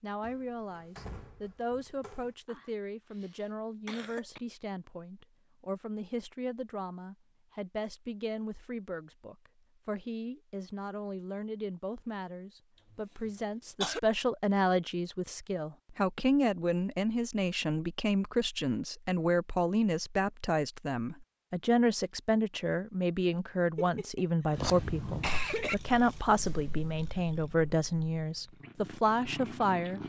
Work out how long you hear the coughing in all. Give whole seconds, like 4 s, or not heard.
5 s.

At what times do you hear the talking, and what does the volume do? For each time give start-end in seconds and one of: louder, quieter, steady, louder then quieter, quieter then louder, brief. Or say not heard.
0.0-30.0 louder.